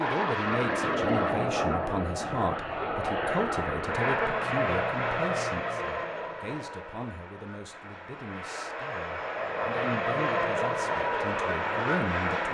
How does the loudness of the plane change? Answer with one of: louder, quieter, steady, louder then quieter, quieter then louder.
quieter then louder.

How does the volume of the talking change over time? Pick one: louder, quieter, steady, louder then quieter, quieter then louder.
quieter then louder.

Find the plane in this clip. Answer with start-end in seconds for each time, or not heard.
0.0-12.4.